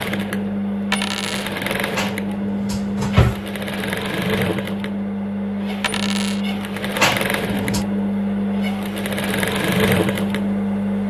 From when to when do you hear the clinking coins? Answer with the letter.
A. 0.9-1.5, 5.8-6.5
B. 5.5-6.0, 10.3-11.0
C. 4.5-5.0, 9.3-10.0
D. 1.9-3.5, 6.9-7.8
A.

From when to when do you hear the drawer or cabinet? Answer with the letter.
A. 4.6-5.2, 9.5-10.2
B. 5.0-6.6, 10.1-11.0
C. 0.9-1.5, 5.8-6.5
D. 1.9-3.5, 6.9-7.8
D.